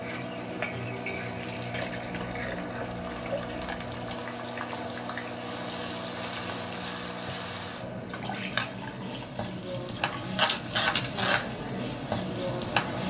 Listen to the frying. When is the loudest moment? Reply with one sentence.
The volume of the frying peaks at 11 seconds.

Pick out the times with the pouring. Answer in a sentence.
The pouring can be heard from 1.7 to 4.2 s and from 8.0 to 10.3 s.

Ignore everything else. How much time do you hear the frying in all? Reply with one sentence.
You can hear the frying for 13 seconds altogether.